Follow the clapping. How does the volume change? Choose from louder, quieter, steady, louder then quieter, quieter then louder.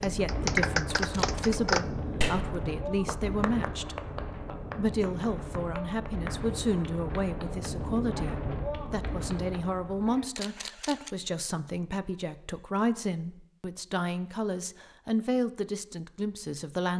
quieter.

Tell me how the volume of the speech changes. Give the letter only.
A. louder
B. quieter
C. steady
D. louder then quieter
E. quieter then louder
C.